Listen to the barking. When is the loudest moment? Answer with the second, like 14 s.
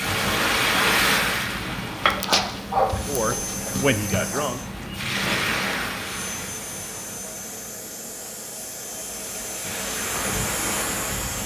2 s.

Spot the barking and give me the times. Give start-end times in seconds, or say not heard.
2.0-4.4.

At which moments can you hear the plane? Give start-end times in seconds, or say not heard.
2.9-4.7, 6.0-11.4.